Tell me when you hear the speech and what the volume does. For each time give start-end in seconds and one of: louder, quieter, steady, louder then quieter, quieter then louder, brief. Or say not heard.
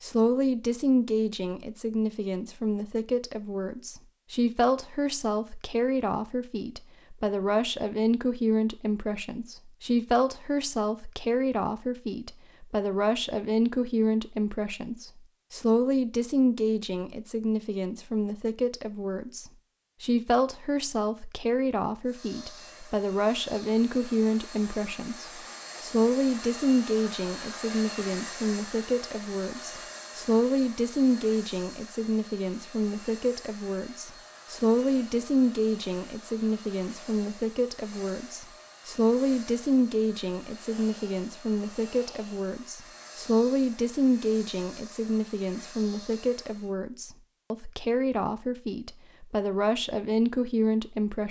0.0-51.2 steady.